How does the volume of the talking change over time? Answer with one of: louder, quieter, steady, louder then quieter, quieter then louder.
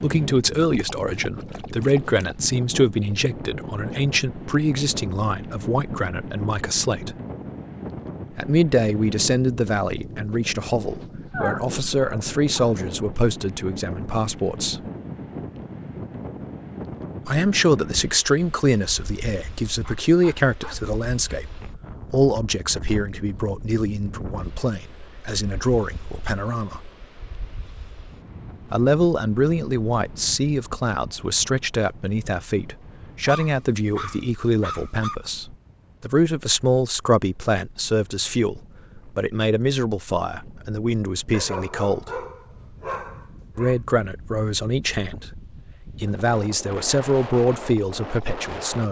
steady.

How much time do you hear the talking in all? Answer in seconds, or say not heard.
42 s.